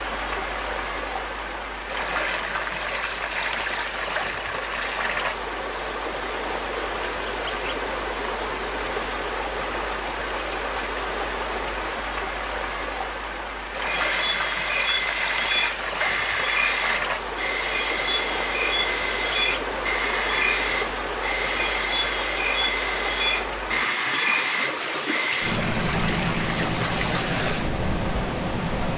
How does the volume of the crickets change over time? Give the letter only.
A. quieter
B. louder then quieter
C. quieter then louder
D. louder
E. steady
E.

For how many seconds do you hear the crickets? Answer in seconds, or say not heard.
17 s.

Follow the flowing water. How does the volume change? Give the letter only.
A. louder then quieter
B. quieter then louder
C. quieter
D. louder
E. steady
E.